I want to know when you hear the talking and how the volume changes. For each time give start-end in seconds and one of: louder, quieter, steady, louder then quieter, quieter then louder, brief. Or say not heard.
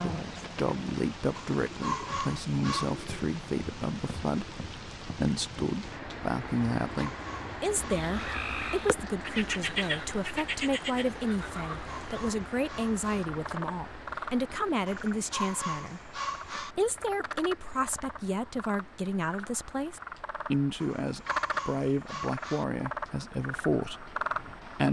0.0-24.8 steady.